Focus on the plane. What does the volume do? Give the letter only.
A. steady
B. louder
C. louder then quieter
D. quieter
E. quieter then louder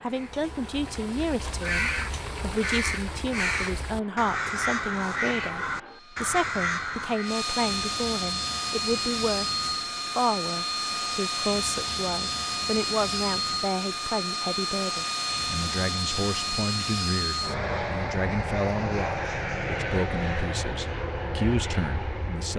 B.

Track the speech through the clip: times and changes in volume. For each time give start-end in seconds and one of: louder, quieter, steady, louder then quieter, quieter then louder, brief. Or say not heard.
0.0-22.5 steady.